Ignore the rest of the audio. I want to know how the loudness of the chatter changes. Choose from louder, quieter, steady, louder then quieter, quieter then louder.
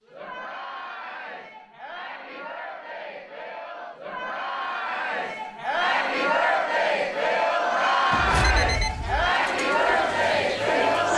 louder.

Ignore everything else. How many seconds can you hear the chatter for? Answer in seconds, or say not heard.
11 s.